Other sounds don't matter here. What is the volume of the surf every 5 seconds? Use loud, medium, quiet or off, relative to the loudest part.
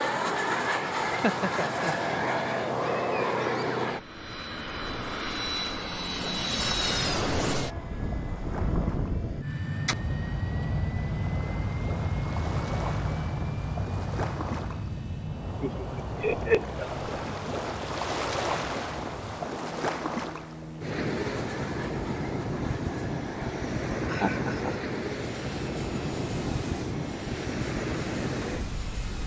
medium, medium, medium, loud, loud, loud.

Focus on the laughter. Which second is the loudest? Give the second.
16 s.